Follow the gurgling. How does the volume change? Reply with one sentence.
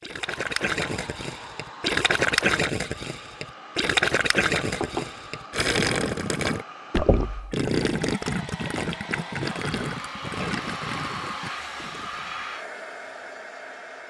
The volume of the gurgling goes down.